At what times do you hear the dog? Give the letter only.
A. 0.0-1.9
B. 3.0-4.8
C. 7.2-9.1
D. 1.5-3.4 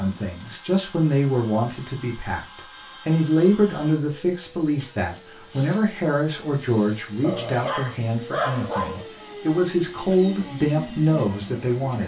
C.